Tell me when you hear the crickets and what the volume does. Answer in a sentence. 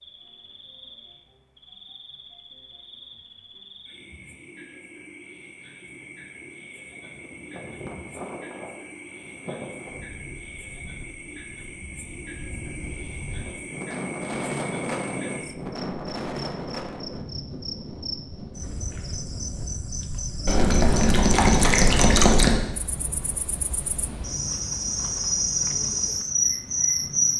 The crickets can be heard from 0.0 to 27.3 s, getting louder.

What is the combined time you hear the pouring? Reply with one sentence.
You can hear the pouring for 2 seconds altogether.